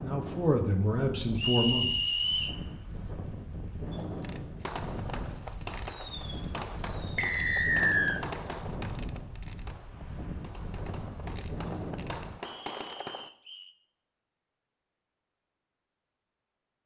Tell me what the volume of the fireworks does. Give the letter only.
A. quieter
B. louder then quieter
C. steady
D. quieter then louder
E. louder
D.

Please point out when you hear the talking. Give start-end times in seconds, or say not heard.
0.0-1.9.